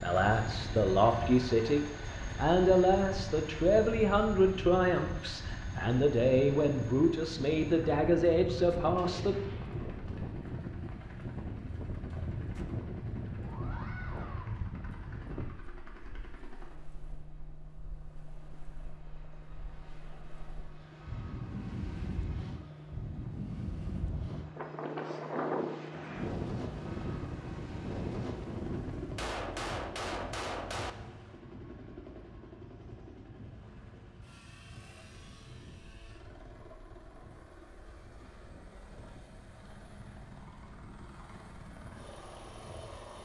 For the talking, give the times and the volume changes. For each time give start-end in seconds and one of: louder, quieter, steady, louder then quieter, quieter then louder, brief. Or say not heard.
0.0-9.3 steady.